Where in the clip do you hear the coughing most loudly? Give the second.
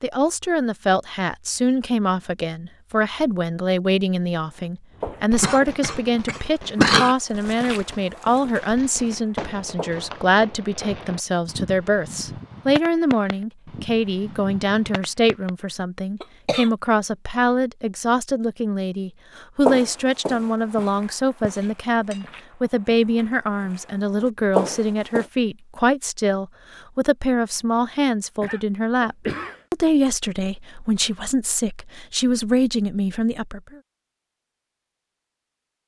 7 s.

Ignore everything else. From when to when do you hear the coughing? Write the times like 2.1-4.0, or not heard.
5.4-7.2, 16.2-16.7, 28.4-29.6.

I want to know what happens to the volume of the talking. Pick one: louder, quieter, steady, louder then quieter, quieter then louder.
steady.